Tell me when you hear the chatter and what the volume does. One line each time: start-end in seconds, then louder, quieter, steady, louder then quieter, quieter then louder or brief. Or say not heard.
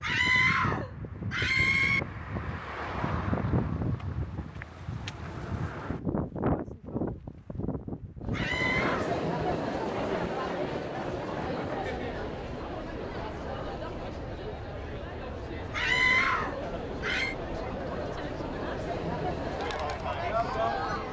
8.2-21.0 quieter then louder.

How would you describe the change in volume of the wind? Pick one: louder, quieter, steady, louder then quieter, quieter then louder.
quieter.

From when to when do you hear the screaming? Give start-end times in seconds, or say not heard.
0.0-2.0, 8.3-9.2, 15.7-17.4.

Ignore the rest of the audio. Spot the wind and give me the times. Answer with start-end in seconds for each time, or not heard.
0.0-21.0.